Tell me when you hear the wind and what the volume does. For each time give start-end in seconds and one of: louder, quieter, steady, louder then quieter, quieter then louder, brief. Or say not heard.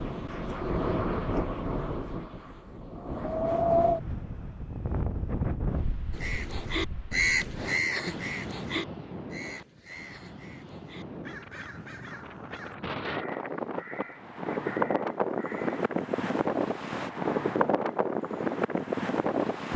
0.0-19.7 quieter then louder.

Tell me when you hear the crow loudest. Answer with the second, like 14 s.
7 s.